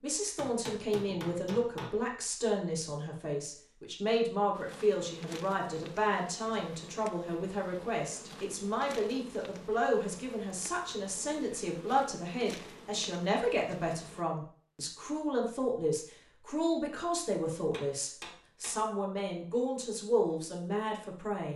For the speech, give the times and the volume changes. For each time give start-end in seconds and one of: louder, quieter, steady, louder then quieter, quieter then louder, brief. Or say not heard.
0.0-21.5 steady.